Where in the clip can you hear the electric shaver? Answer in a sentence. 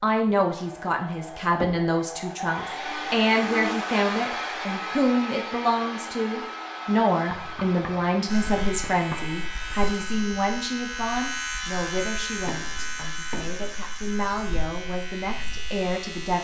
The electric shaver can be heard from 8.2 to 16.3 s.